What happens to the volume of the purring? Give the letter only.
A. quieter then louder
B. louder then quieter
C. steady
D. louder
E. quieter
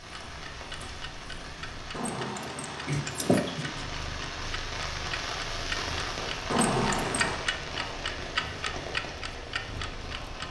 B.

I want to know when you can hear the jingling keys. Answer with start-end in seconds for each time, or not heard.
1.9-3.5, 6.5-7.4.